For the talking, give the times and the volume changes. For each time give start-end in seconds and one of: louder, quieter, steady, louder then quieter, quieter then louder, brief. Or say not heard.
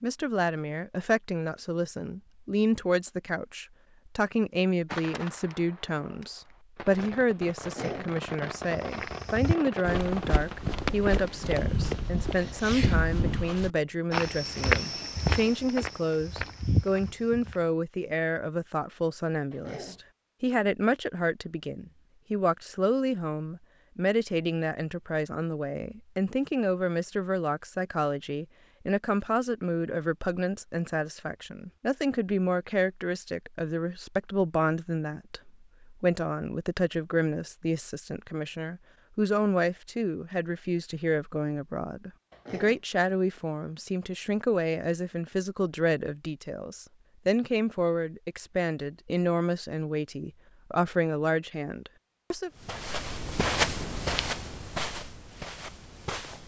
0.0-52.5 steady.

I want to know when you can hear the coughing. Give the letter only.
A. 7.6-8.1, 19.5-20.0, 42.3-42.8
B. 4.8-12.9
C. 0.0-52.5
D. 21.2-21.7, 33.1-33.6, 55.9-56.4
A.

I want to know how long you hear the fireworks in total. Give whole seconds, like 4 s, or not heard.
8 s.